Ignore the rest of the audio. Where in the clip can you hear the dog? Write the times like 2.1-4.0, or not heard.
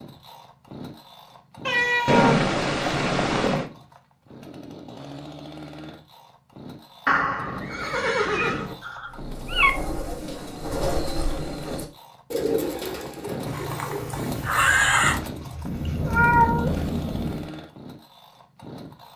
not heard.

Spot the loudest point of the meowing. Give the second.
16 s.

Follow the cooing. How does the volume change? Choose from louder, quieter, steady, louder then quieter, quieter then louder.
quieter.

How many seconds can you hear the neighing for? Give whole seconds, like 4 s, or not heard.
5 s.